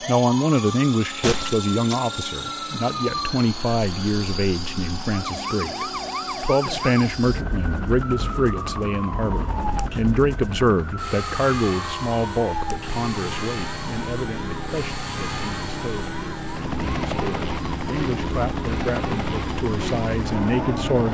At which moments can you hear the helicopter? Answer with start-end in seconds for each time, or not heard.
0.0-21.1.